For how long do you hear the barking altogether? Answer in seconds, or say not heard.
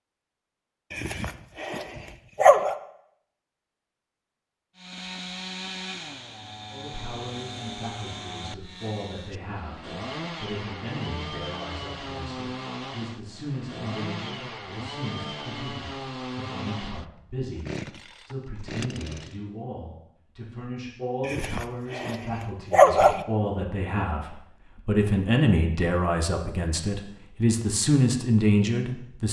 4 s.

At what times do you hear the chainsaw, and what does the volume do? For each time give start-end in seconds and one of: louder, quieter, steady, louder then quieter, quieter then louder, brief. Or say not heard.
4.8-19.4 steady.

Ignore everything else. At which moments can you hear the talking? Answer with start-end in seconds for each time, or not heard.
6.7-29.2.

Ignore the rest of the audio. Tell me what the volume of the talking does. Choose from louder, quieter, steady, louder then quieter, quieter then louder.
louder.